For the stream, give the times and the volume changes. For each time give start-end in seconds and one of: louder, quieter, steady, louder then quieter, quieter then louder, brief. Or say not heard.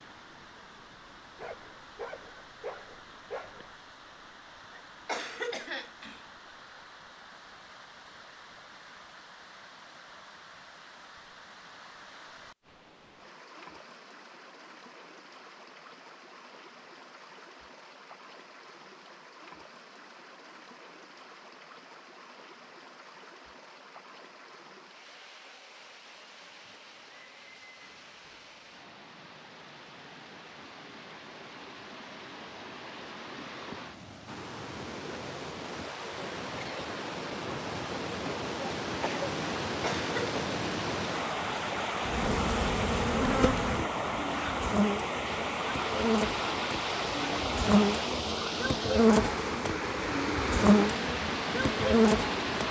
0.0-52.6 louder.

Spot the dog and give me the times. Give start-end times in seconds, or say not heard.
1.4-3.8.